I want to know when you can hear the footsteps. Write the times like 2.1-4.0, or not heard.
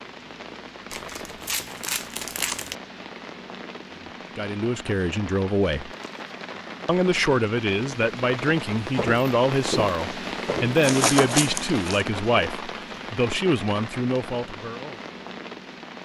8.8-10.8.